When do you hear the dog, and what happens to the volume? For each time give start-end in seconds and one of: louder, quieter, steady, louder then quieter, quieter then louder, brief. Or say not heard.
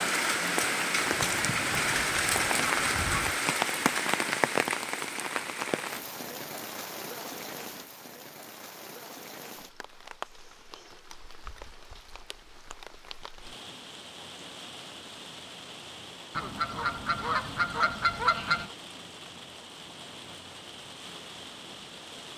not heard.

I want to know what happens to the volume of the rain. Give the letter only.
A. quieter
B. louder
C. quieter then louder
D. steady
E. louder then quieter
A.